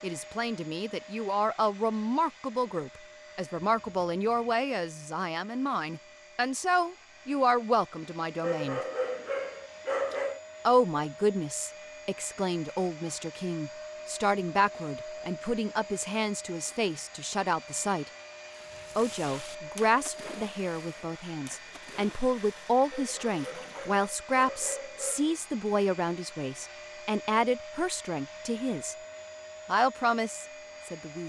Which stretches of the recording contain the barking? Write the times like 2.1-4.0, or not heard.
8.4-10.4, 22.9-25.4.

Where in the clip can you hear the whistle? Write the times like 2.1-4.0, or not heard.
not heard.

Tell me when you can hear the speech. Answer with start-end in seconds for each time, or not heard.
0.0-8.8, 10.7-18.1, 18.9-28.9, 29.6-31.2.